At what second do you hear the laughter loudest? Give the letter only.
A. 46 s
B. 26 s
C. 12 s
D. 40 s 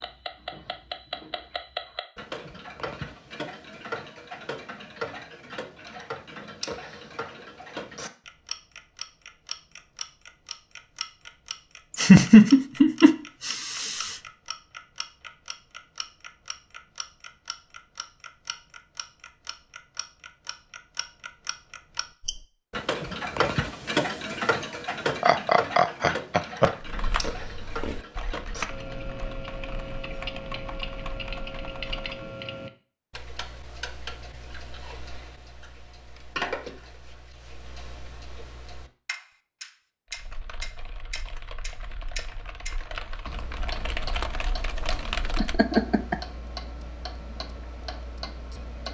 C.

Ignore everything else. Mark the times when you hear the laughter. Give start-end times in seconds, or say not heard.
11.9-14.2, 25.1-26.7, 45.4-46.1.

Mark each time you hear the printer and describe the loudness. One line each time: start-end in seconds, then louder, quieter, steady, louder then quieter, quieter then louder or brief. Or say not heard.
not heard.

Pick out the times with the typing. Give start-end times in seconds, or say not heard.
26.8-32.2, 40.1-45.6.